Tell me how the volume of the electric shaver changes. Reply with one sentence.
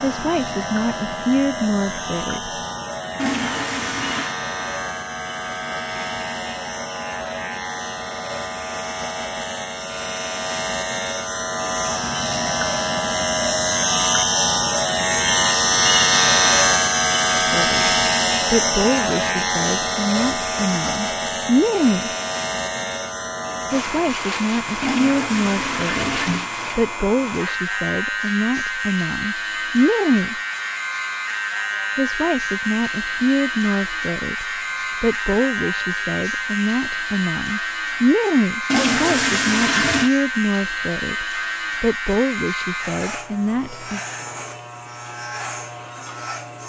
The loudness of the electric shaver goes up, then down.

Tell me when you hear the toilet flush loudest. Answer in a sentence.
The loudest moment of the toilet flush is at 39 seconds.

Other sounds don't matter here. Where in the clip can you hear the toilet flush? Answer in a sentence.
You can hear the toilet flush from 3.1 to 4.3 s, from 24.8 to 26.5 s and from 38.7 to 40.1 s.